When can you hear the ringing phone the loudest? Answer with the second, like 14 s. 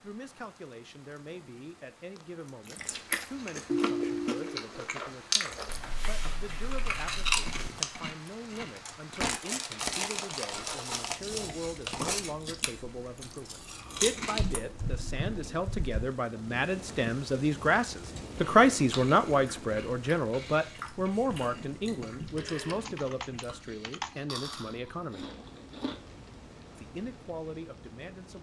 4 s.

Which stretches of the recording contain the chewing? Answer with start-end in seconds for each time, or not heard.
2.6-14.6, 18.1-25.9.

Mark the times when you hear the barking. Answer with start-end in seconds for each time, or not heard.
not heard.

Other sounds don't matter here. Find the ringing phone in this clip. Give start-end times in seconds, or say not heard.
3.6-4.7, 22.4-22.8.